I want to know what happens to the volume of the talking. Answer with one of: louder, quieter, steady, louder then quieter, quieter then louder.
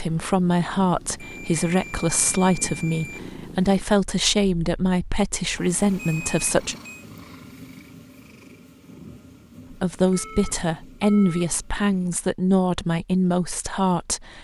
steady.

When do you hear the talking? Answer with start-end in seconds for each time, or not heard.
0.0-6.8, 9.7-14.3.